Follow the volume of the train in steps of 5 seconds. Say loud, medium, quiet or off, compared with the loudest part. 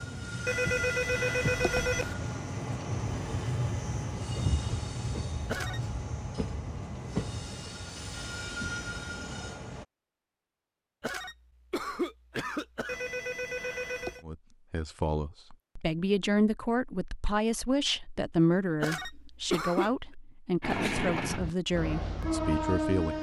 loud, medium, off, off, loud.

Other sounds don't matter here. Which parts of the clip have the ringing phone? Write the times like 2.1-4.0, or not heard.
0.5-2.1, 12.8-14.2.